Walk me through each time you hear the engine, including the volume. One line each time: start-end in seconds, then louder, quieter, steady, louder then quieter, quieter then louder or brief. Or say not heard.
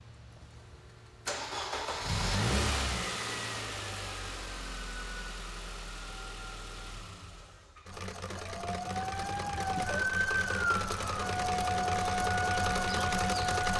0.0-13.7 quieter then louder.